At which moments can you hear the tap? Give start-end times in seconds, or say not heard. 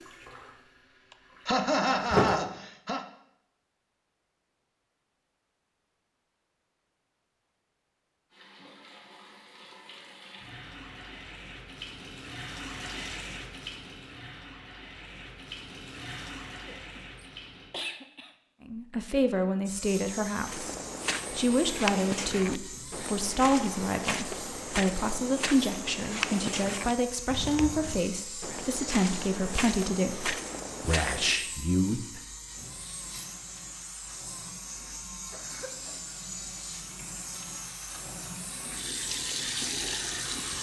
0.0-2.5, 8.3-17.8, 32.5-40.5.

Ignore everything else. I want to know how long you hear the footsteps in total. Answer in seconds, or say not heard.
11 s.